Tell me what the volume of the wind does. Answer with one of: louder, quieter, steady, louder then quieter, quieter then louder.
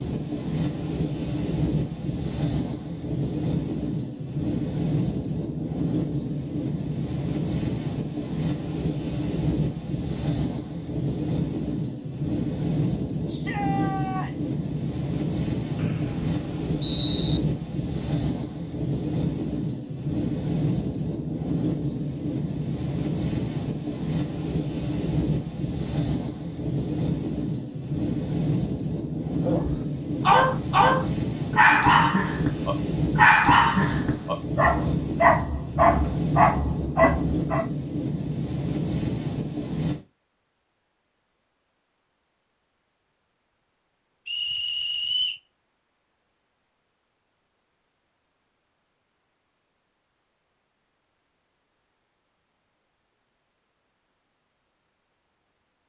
steady.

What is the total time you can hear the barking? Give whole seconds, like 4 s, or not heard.
8 s.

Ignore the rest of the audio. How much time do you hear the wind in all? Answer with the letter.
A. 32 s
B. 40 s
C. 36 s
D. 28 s
B.